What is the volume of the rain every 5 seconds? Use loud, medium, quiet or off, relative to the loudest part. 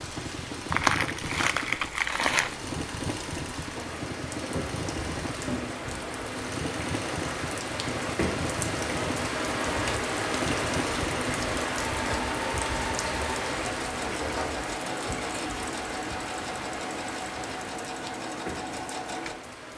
medium, loud, loud, medium.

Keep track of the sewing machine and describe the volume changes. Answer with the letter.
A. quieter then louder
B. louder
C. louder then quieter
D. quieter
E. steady
E.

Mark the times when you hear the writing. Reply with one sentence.
You can't hear the writing here.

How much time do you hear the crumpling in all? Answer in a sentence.
You can hear the crumpling for 2 seconds altogether.